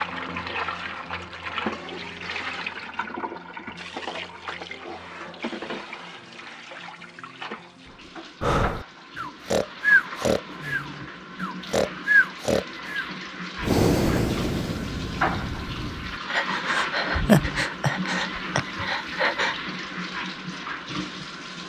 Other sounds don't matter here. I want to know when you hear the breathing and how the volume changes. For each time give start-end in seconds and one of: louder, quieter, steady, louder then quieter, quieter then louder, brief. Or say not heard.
8.4-19.6 quieter then louder.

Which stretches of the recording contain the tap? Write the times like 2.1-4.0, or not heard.
0.0-21.6.